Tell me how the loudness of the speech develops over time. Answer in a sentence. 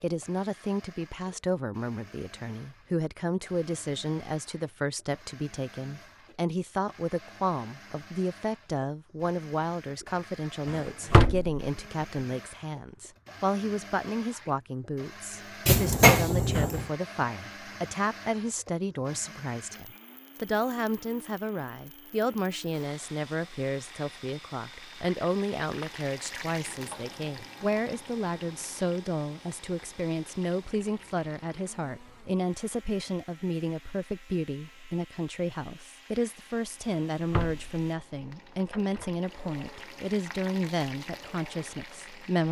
The volume of the speech stays about the same.